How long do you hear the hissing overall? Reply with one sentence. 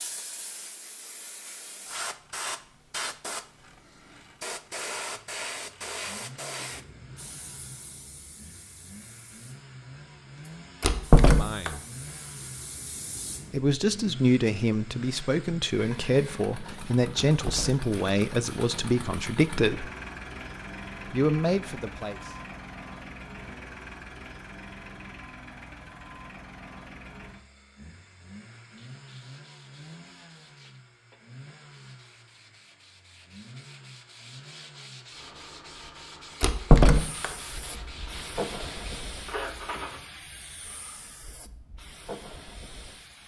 You can hear the hissing for 20 seconds altogether.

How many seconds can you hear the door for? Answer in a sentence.
You can hear the door for 2 seconds altogether.